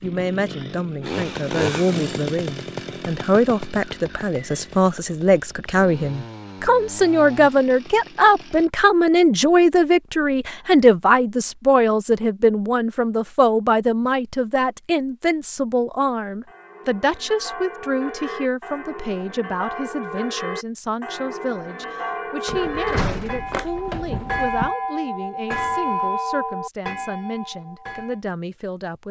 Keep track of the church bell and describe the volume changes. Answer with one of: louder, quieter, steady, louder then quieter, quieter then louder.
louder.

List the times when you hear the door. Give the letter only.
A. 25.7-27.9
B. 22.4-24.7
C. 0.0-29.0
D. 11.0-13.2
B.